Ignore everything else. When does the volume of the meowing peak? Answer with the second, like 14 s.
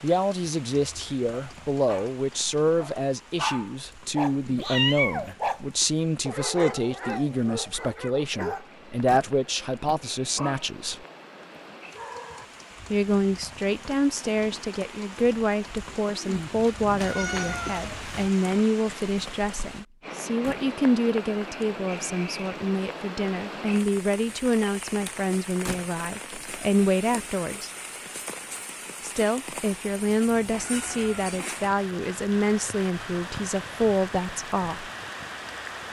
5 s.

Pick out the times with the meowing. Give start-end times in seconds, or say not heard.
4.5-5.3, 16.4-18.3, 30.1-31.4.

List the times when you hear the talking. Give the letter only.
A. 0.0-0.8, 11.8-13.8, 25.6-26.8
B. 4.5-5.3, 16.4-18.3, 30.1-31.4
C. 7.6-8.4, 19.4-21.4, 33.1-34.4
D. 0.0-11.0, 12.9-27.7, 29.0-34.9
D.